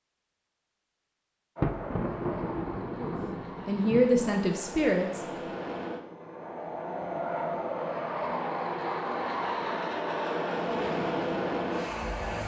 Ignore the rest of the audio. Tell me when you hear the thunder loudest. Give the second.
2 s.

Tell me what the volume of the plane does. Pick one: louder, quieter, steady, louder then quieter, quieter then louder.
louder.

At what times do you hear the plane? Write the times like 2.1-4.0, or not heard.
1.6-12.4.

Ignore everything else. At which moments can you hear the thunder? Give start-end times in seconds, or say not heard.
1.6-4.4.